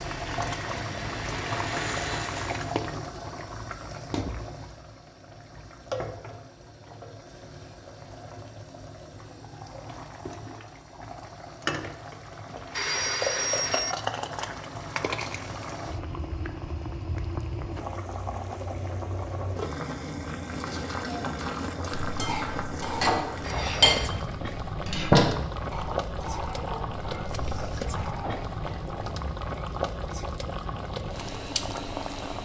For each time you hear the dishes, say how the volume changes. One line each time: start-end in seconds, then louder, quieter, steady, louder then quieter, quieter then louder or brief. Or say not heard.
22.0-29.1 louder then quieter.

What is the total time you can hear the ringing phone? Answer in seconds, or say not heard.
2 s.